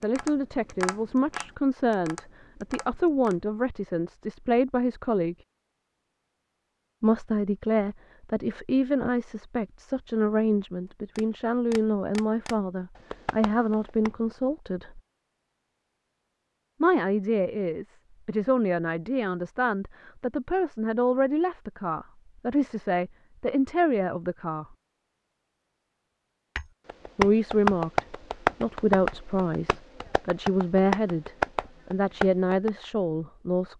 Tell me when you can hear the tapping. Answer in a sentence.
The tapping can be heard from 0.0 to 3.4 s, from 11.2 to 14.1 s and from 26.6 to 32.9 s.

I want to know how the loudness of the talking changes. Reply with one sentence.
The loudness of the talking stays about the same.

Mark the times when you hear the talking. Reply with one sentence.
You can hear the talking from 0.0 to 5.3 s, from 7.0 to 15.0 s, from 16.8 to 24.6 s and from 27.1 to 33.7 s.